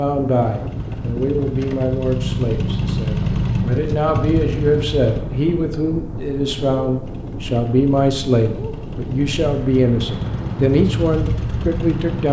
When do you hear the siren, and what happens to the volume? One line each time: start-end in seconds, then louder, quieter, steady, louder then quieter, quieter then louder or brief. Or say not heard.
not heard.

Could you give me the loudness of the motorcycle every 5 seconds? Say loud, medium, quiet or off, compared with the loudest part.
loud, medium, loud.